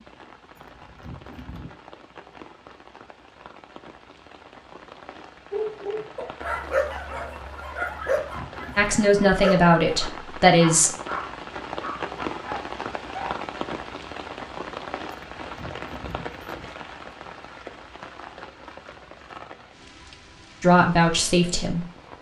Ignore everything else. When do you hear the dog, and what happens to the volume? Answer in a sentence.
The dog can be heard from 5.5 to 13.4 s, getting quieter.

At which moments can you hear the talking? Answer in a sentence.
You can hear the talking from 8.8 to 10.9 s and from 20.6 to 21.9 s.